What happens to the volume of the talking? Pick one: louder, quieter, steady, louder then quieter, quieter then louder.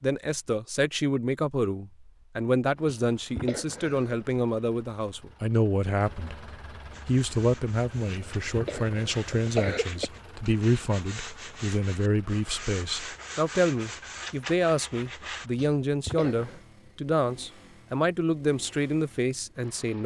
steady.